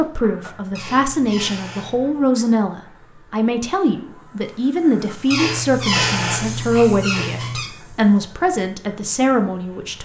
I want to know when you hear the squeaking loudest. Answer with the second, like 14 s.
6 s.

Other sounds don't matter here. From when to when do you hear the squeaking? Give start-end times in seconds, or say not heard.
0.8-2.1, 5.3-7.7.